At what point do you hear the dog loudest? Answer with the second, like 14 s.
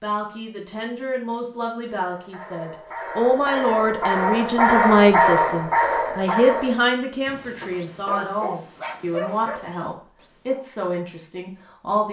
5 s.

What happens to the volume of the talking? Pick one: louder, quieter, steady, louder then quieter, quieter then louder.
louder then quieter.